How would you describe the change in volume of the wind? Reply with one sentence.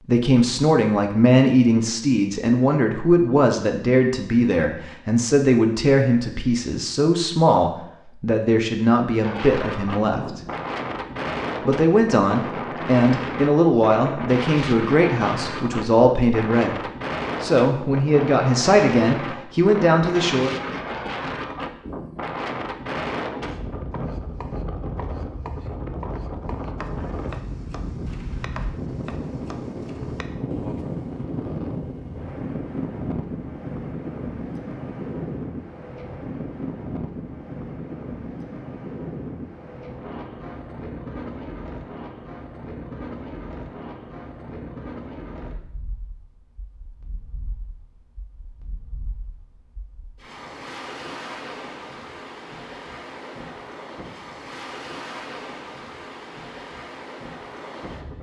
The loudness of the wind goes down.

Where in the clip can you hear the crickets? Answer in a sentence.
The crickets can't be heard in this clip.